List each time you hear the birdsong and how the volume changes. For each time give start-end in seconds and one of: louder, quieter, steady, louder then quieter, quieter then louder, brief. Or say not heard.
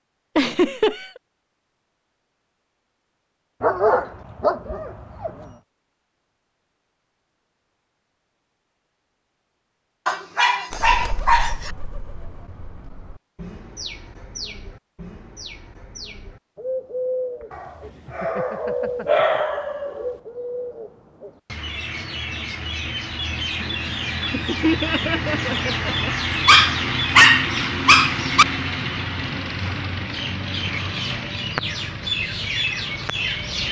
10.7-33.6 louder.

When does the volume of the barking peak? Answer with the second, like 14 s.
27 s.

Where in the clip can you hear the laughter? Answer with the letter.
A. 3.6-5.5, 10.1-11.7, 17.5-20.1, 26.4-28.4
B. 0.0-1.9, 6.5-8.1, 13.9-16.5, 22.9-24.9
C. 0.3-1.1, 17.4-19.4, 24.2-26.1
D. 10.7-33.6
C.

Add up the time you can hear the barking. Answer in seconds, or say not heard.
8 s.